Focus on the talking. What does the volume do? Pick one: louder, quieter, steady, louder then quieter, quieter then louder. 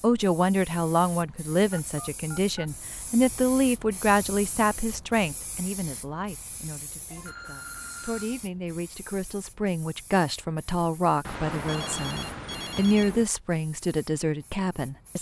quieter then louder.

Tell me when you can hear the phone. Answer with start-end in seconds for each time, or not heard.
1.7-2.6, 7.1-8.5, 11.2-13.2.